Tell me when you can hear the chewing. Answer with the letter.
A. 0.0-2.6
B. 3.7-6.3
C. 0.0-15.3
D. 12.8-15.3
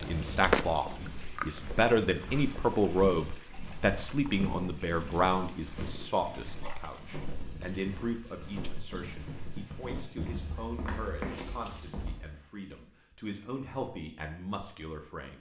A.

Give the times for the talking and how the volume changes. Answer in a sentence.
You can hear the talking from 0.0 to 15.3 s, getting quieter.